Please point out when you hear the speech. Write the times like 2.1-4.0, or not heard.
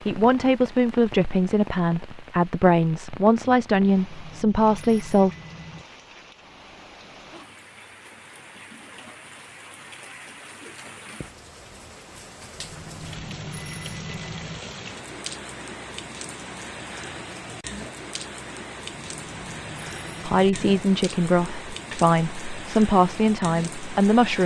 0.1-5.3, 20.2-24.4.